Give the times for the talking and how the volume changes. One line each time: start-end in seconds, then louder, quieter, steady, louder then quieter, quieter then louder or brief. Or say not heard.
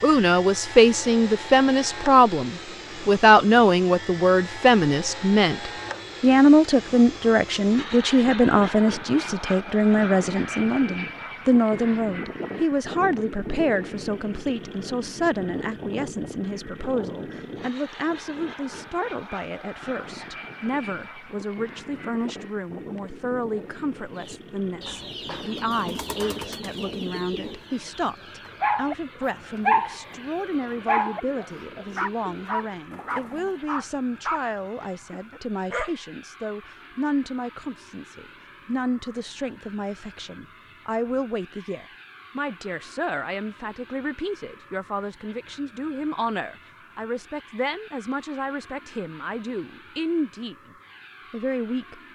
0.0-50.5 quieter
51.3-52.0 brief.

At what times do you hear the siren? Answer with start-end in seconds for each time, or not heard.
not heard.